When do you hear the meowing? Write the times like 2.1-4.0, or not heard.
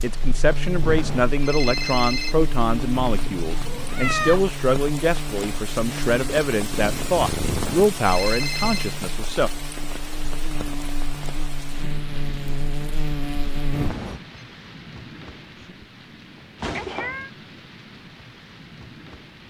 3.0-4.5, 6.7-7.8, 16.6-17.3.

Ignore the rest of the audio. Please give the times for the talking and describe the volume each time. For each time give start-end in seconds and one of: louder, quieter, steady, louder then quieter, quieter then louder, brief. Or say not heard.
0.0-9.5 steady.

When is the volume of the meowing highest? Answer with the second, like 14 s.
4 s.